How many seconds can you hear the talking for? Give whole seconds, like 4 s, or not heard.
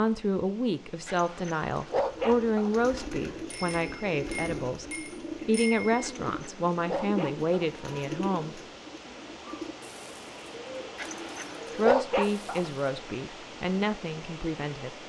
12 s.